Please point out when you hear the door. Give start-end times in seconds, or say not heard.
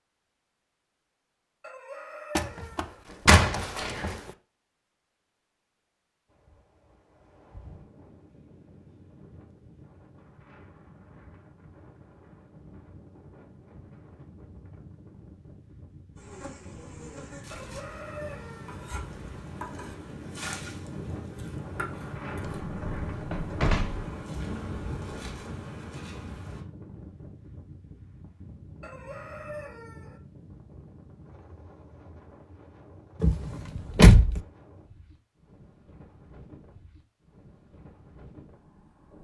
2.4-4.2, 22.4-24.1, 33.2-34.4.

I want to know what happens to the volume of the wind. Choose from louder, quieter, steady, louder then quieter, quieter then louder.
louder then quieter.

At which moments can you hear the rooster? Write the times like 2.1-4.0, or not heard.
1.6-3.0, 17.5-18.8, 28.8-30.2.